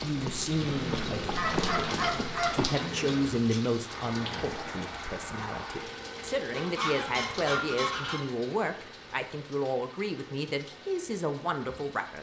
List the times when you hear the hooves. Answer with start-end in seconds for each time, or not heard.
0.0-2.8.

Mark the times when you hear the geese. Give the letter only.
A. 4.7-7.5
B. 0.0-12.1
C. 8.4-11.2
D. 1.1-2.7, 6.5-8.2
D.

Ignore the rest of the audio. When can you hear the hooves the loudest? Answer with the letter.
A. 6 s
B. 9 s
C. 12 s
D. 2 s
D.